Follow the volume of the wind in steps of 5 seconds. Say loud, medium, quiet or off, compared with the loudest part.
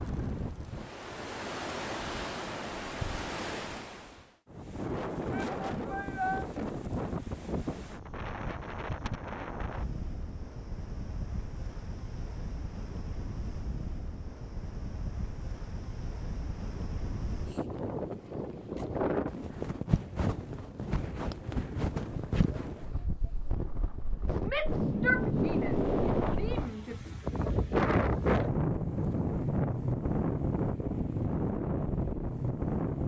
medium, medium, quiet, medium, medium, loud, loud.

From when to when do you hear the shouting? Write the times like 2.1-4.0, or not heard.
5.3-6.5, 24.4-26.9.